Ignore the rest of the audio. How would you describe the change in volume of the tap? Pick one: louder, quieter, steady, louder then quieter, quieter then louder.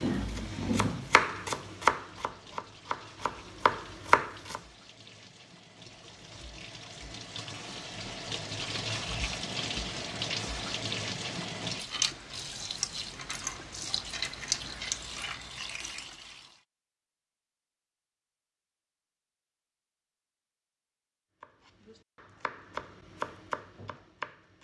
louder.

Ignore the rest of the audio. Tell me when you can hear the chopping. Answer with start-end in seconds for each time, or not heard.
0.0-4.6, 21.4-24.5.